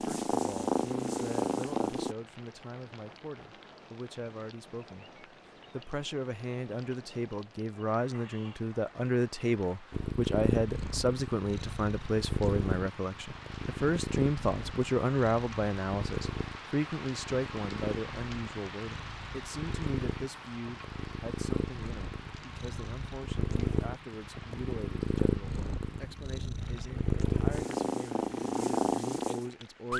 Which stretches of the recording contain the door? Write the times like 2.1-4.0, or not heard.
not heard.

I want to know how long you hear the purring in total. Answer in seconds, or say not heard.
22 s.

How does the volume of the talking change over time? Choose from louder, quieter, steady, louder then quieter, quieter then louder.
louder then quieter.